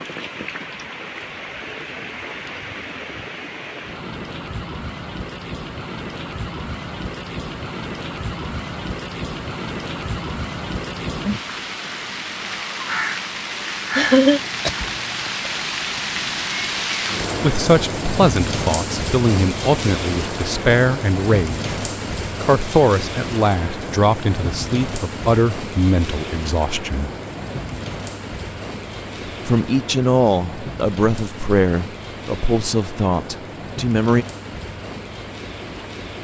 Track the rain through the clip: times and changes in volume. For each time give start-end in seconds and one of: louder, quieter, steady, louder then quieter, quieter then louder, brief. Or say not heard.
0.0-36.1 louder then quieter.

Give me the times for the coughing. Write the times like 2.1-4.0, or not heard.
13.9-15.5.